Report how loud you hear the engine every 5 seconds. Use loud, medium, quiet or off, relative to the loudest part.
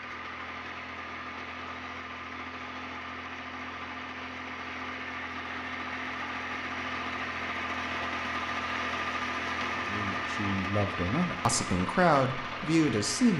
medium, loud, loud.